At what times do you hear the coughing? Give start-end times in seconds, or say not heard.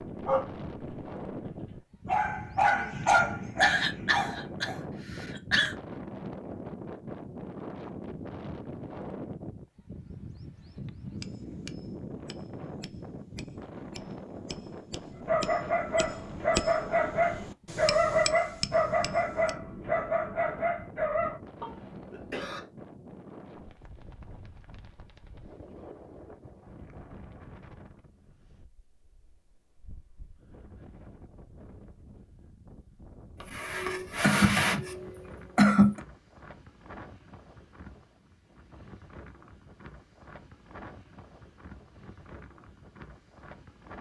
3.6-5.8, 21.6-22.6, 33.4-36.0.